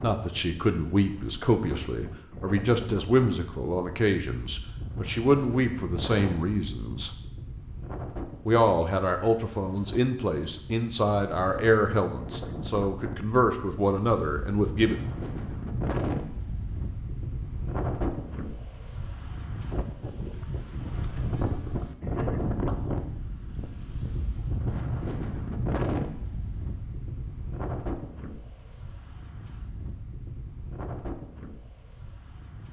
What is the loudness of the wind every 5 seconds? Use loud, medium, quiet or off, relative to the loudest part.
medium, medium, medium, loud, loud, loud, medium.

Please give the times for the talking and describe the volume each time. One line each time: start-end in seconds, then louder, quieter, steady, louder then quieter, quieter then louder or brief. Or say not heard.
0.0-7.1 steady
8.4-15.0 steady.